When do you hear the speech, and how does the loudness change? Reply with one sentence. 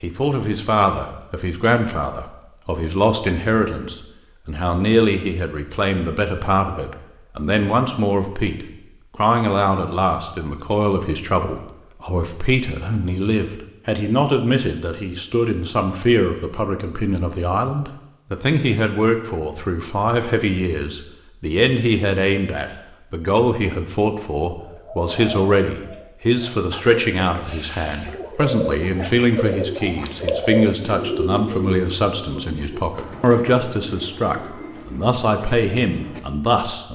The speech can be heard from 0.0 to 36.9 s, at a steady volume.